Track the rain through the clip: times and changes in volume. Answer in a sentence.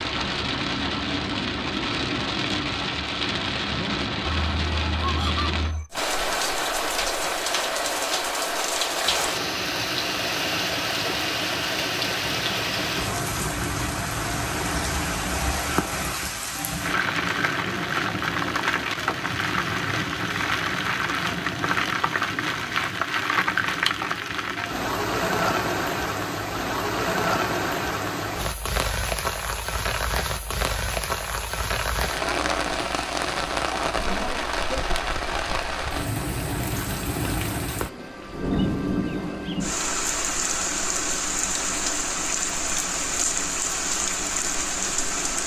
You can hear the rain from 0.0 to 45.4 s, at a steady volume.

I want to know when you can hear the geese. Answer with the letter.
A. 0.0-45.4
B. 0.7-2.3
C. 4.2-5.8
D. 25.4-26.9
C.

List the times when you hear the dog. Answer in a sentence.
You can't hear the dog here.